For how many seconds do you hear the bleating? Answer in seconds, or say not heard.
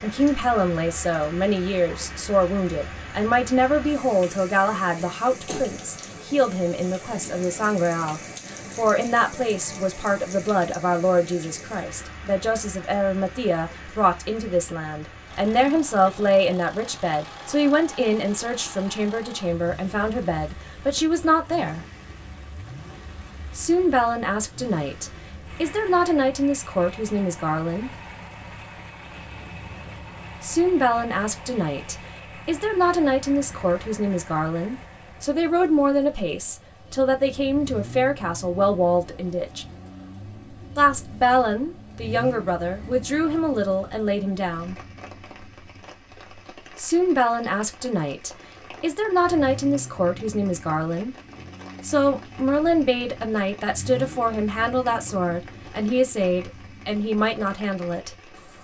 not heard.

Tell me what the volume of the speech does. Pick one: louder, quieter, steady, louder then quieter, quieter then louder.
steady.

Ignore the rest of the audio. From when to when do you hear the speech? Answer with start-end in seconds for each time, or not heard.
0.0-21.9, 23.6-27.9, 30.4-39.6, 40.8-44.8, 46.8-51.1, 51.8-58.1.